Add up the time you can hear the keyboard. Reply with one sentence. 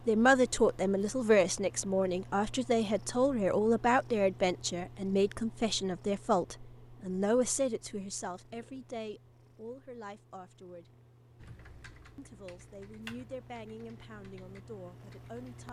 The keyboard can be heard for 4 seconds in total.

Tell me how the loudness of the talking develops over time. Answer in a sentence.
The volume of the talking goes down.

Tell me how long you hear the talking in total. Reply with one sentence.
The talking can be heard for 14 seconds in total.